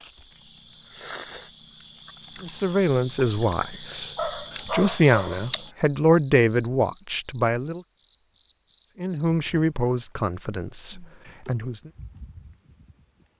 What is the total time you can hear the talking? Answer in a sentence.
The talking can be heard for 8 seconds in total.